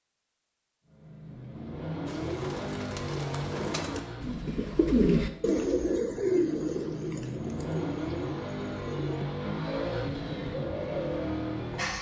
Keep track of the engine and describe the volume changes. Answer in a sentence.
The loudness of the engine goes down, then up.